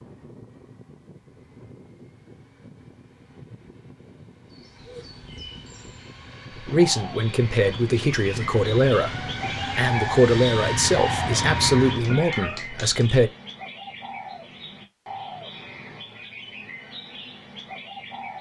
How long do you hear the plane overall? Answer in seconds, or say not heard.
12 s.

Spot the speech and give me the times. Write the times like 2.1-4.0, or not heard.
6.5-13.3.